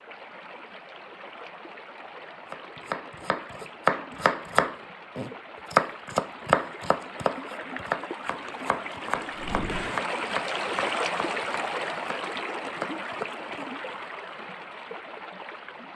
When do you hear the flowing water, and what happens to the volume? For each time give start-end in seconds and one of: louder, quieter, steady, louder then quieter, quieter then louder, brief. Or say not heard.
0.0-15.9 louder then quieter.